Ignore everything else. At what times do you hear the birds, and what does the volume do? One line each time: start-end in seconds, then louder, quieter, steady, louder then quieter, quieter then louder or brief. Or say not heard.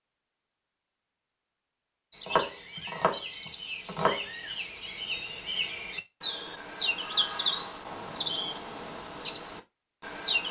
2.1-10.4 louder.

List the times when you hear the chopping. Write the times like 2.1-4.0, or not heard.
2.2-4.2.